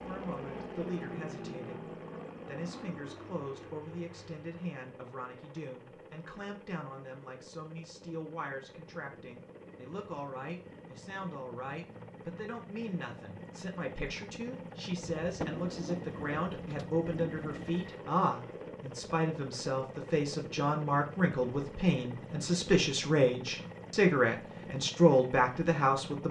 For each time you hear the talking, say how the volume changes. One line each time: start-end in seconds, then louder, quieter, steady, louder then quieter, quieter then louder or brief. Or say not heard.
0.1-26.2 louder.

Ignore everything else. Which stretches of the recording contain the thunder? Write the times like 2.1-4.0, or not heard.
15.2-17.9.